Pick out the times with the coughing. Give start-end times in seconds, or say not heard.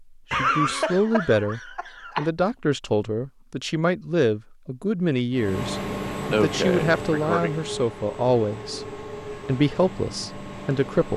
0.3-2.3, 6.3-7.5.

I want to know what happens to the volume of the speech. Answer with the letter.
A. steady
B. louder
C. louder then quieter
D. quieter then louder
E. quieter
A.